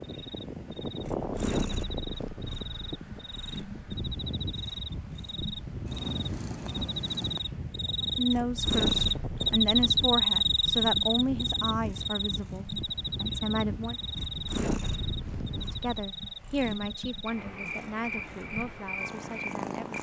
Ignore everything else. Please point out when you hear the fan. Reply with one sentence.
The fan can be heard from 0.0 to 16.0 s.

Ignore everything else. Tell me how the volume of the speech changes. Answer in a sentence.
The loudness of the speech goes down.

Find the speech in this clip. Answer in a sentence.
You can hear the speech from 8.0 to 14.0 s and from 15.5 to 19.9 s.